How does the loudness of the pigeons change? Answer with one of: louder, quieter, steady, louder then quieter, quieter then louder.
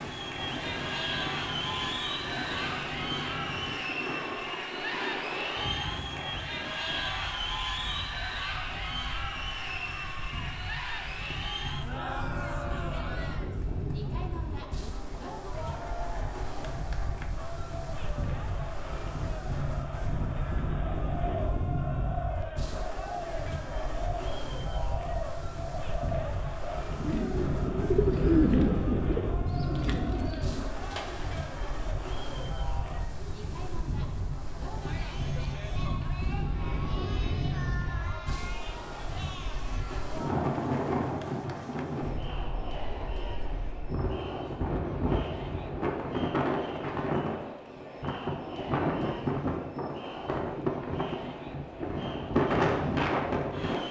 louder then quieter.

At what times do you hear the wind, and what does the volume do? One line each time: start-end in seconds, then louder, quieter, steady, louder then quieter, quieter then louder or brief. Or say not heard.
0.0-53.8 louder.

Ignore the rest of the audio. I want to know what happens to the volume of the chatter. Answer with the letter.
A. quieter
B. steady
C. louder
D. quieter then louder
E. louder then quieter
A.